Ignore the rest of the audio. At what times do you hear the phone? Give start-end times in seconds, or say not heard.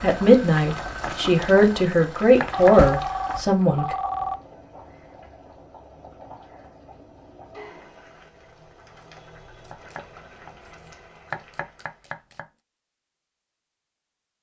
2.5-4.4.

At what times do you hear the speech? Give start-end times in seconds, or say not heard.
0.0-4.0.